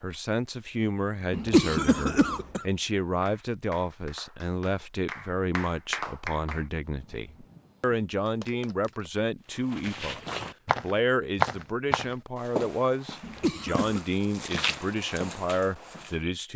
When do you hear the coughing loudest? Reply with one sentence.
The volume of the coughing peaks at 2 seconds.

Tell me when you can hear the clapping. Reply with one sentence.
You can hear the clapping from 3.2 to 9.2 s.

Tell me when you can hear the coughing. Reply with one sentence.
You can hear the coughing from 1.3 to 2.6 s and from 13.2 to 14.1 s.